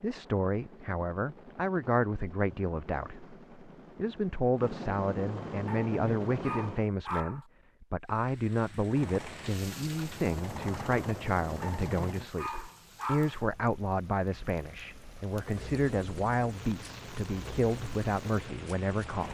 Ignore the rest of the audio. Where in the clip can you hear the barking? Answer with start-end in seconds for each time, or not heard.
5.7-7.5, 11.6-13.4.